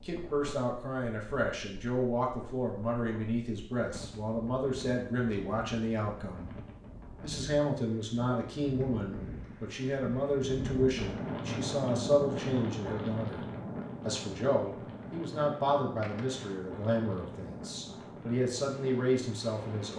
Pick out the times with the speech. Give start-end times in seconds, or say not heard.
0.0-6.5, 7.2-13.4, 14.1-19.9.